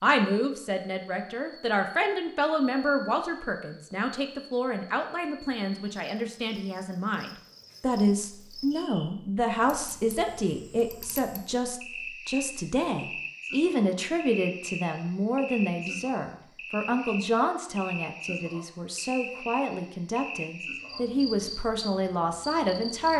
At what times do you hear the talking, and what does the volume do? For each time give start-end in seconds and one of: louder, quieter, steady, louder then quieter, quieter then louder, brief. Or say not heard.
0.0-23.1 steady.